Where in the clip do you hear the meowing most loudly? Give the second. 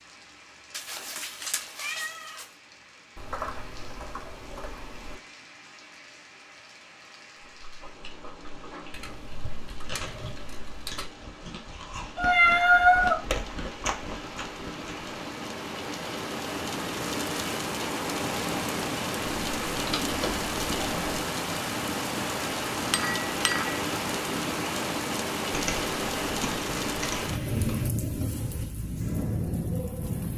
13 s.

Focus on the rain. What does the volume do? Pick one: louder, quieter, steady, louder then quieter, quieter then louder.
louder.